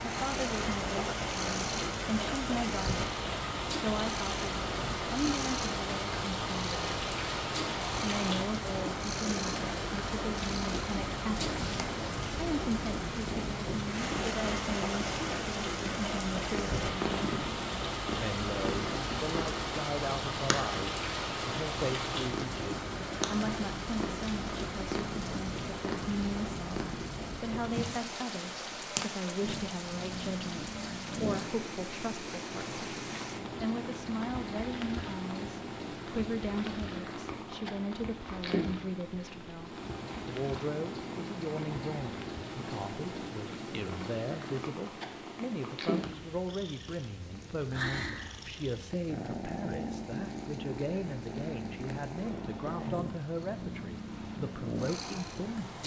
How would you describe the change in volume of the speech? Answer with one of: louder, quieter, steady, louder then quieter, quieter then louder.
steady.